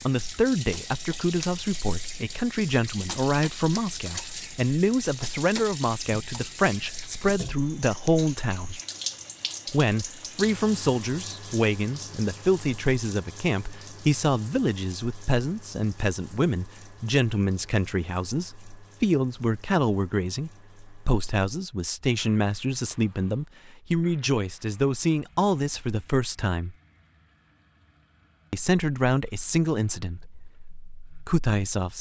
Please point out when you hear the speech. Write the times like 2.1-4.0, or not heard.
0.0-8.8, 9.7-26.8, 28.5-31.9.